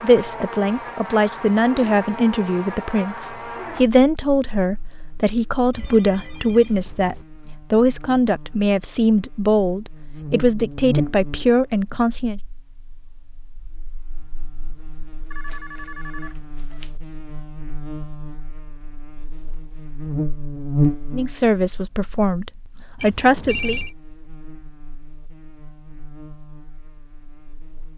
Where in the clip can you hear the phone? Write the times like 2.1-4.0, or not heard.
5.7-7.2, 15.3-16.9, 23.0-23.9.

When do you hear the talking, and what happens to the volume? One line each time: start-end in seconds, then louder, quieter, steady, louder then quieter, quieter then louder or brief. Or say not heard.
0.0-12.4 steady
21.1-23.8 brief.